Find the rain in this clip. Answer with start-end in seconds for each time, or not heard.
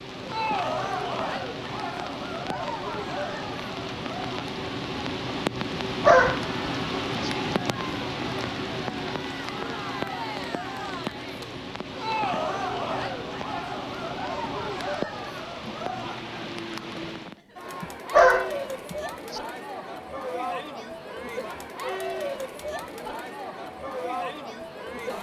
0.0-17.4.